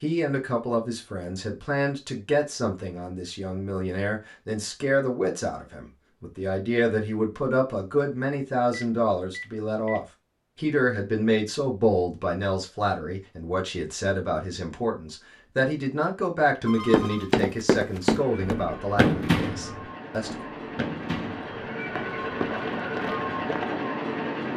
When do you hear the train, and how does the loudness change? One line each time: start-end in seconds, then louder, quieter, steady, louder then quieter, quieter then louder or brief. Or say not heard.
18.1-24.5 louder.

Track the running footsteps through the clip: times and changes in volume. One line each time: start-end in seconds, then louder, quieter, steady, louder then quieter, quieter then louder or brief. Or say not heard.
16.9-23.7 quieter.